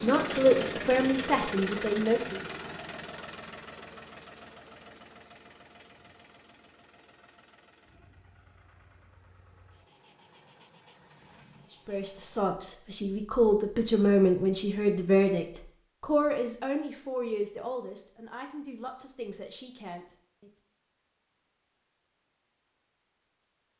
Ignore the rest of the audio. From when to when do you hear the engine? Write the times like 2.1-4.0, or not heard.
0.0-12.6.